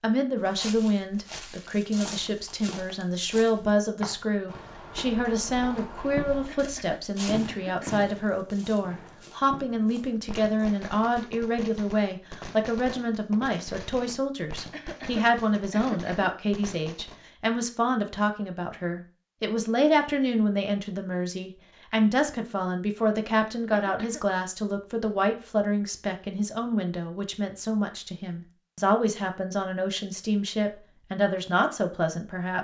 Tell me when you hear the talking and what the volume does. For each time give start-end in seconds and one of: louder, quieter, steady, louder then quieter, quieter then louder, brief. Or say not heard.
0.0-32.5 steady.